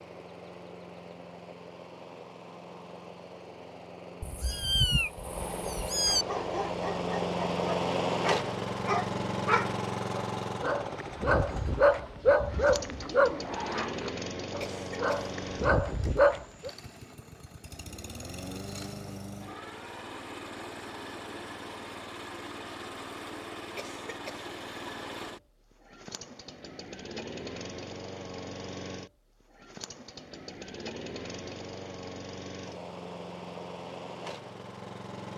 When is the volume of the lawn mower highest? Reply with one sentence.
The loudest moment of the lawn mower is at 8 seconds.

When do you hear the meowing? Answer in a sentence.
The meowing can be heard from 4.2 to 6.2 s.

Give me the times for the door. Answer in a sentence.
The door can't be heard in this clip.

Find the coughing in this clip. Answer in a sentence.
The coughing can be heard from 14.6 to 15.3 s and from 23.8 to 24.5 s.